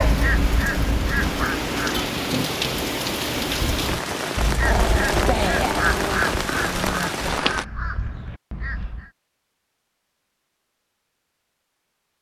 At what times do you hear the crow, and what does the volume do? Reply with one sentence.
The crow can be heard briefly from 0.0 to 2.0 s; and from 3.7 to 9.1 s, getting quieter.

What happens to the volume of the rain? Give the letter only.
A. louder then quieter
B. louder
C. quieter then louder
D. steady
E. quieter
D.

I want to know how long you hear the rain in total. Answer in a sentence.
The rain can be heard for 8 seconds in total.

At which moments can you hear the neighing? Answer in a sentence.
You can't hear the neighing here.